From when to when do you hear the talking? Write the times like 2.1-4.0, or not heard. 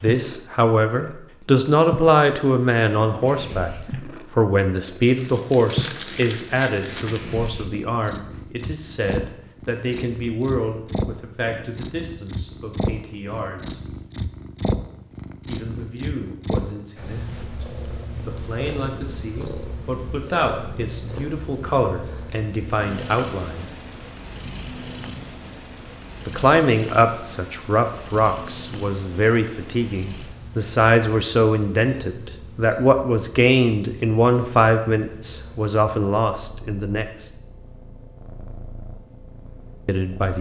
0.0-3.7, 4.3-13.8, 15.4-17.6, 18.2-23.6, 26.2-37.3, 39.9-40.3.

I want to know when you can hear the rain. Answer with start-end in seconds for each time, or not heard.
not heard.